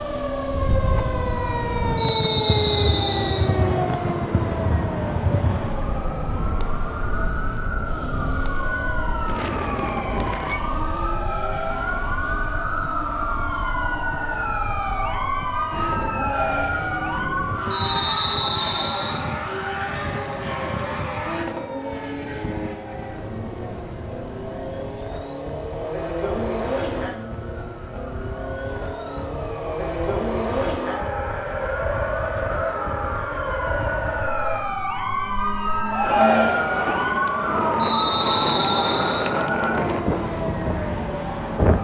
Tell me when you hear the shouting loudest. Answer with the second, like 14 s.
36 s.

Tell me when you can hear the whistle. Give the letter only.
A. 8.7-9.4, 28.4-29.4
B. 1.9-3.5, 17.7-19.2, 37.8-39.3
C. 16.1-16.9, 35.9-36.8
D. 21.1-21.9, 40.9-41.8
B.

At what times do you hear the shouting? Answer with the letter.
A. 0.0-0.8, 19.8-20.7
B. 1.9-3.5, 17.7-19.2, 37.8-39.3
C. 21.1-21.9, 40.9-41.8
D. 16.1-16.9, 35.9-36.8
D.